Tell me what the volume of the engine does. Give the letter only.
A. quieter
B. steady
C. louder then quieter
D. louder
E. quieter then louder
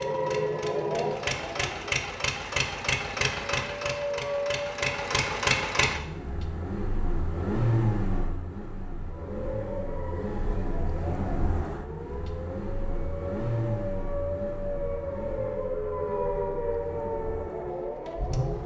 A.